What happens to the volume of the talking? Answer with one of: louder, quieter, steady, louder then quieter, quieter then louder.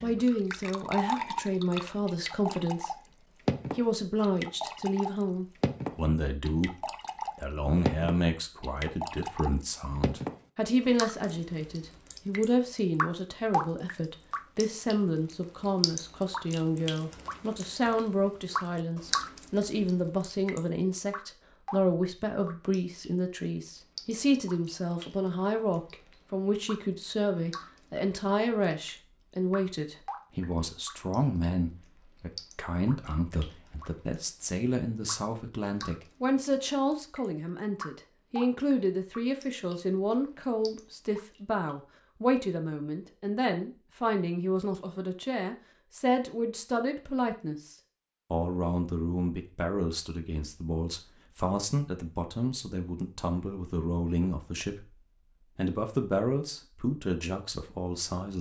steady.